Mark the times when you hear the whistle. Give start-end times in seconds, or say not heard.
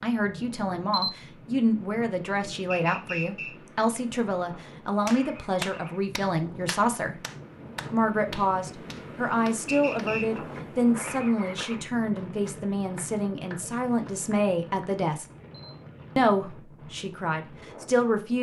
2.7-3.5, 9.7-10.4.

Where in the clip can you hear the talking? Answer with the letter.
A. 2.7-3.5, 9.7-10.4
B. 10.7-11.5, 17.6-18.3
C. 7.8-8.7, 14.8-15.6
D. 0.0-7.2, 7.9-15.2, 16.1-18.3
D.